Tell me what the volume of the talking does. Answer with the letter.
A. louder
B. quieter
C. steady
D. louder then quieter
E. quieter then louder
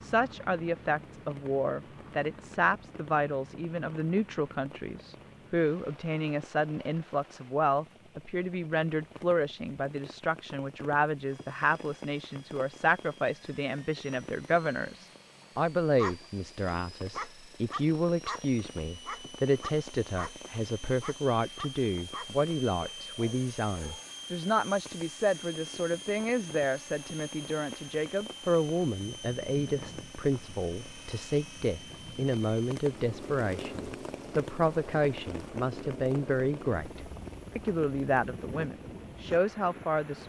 C.